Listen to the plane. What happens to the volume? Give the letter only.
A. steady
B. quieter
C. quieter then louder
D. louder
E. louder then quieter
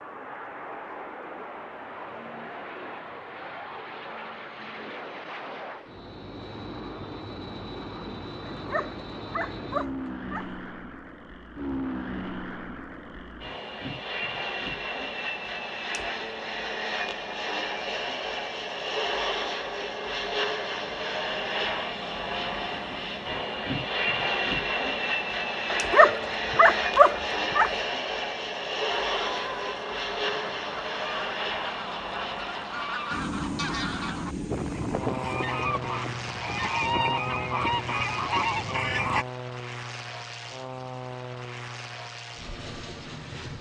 E.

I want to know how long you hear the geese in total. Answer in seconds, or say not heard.
10 s.